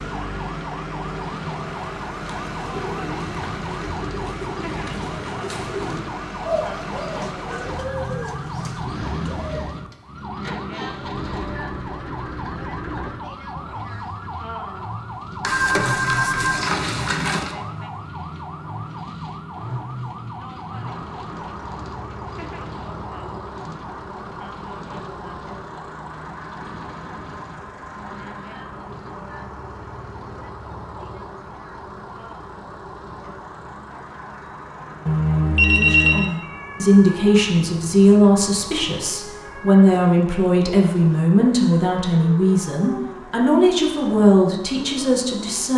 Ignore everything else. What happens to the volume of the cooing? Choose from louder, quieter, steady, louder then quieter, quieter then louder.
louder then quieter.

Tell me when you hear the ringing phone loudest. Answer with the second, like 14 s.
36 s.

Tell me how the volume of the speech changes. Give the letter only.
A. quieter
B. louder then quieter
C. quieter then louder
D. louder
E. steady
E.